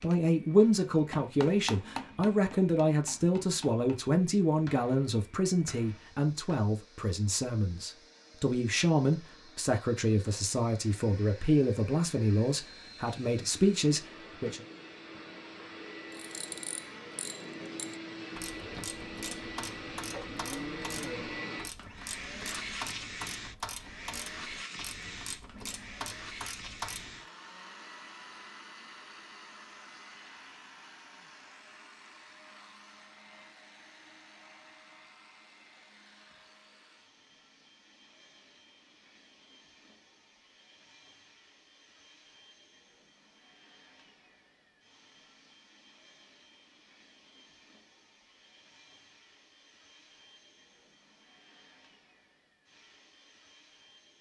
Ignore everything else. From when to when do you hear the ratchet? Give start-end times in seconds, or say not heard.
16.1-27.2.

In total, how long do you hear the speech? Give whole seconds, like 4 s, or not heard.
15 s.